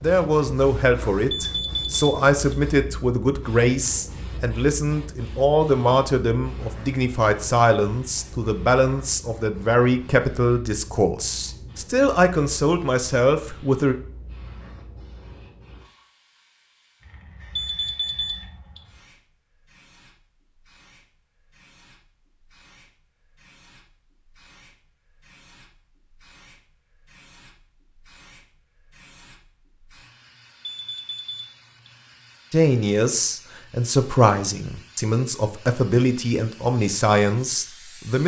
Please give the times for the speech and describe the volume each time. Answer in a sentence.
The speech can be heard from 0.0 to 13.9 s, at a steady volume; and from 32.5 to 38.2 s, at a steady volume.